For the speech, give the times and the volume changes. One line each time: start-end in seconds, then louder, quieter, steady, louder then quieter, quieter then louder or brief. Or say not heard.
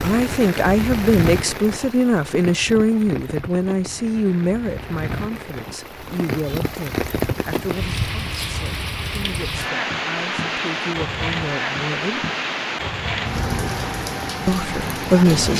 0.0-12.3 quieter
14.4-15.5 brief.